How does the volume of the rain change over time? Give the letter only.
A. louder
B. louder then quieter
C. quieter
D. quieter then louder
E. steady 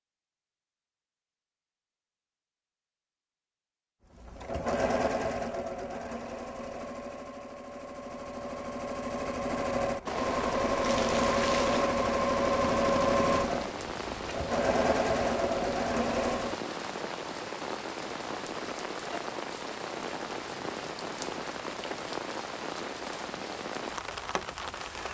E.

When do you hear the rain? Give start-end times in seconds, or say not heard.
10.1-25.0.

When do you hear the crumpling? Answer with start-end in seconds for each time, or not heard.
10.8-11.8.